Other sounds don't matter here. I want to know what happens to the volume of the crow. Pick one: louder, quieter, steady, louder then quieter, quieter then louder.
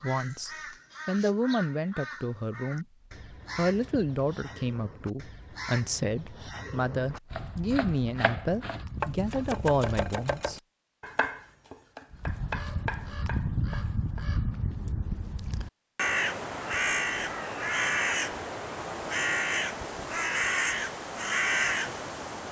louder.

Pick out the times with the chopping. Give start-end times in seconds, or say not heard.
7.3-14.2.